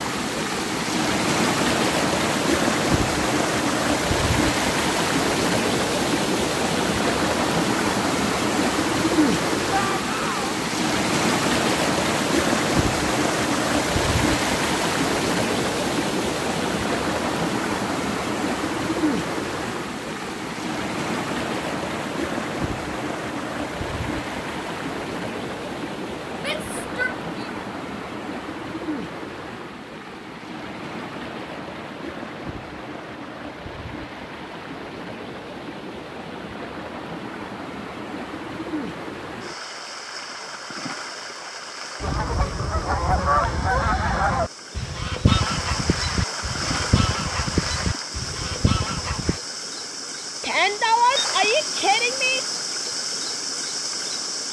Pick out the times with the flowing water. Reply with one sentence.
The flowing water can be heard from 0.0 to 54.4 s.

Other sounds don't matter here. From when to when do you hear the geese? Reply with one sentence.
You can hear the geese from 42.0 to 49.4 s.